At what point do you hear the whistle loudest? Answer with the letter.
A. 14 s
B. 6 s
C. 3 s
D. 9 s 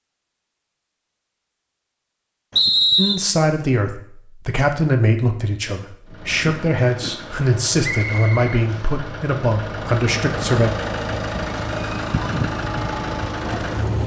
C.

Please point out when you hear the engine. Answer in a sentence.
You can hear the engine from 6.0 to 14.0 s.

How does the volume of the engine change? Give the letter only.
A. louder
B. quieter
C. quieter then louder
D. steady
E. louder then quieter
A.